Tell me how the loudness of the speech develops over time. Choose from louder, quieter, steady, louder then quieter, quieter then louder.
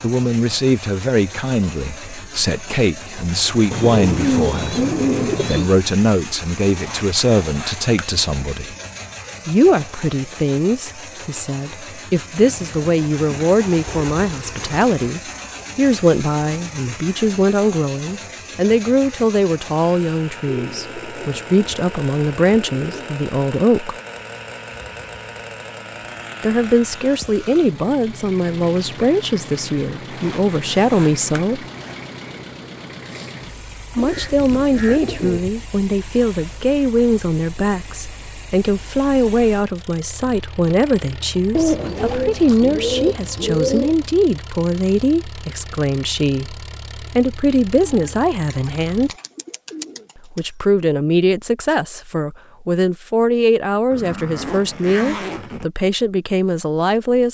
steady.